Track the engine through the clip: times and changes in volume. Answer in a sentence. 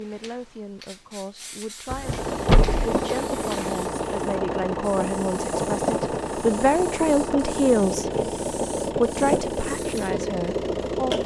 You can hear the engine from 2.0 to 11.2 s, at a steady volume.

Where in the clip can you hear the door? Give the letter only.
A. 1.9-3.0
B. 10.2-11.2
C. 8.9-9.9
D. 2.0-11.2
A.